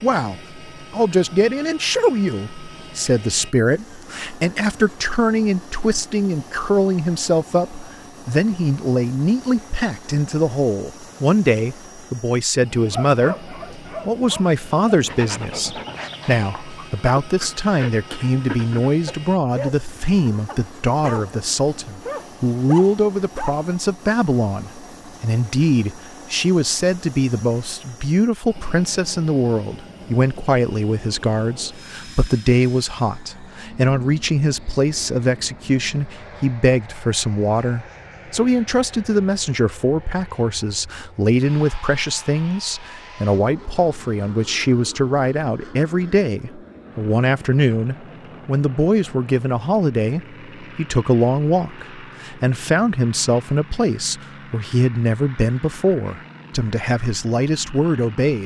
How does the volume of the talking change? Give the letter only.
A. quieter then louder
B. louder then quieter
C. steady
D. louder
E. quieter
C.